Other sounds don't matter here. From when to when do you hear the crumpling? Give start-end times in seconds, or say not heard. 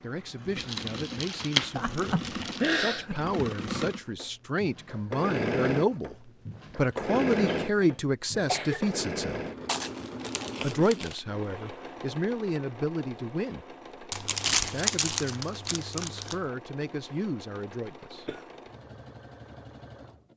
0.6-2.9, 9.7-11.2, 14.1-16.4.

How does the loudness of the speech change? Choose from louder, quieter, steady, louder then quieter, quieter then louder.
louder then quieter.